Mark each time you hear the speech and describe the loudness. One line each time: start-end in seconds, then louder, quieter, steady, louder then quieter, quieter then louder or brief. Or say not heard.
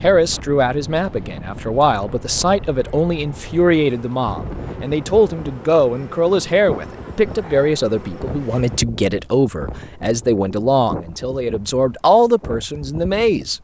0.0-13.5 steady.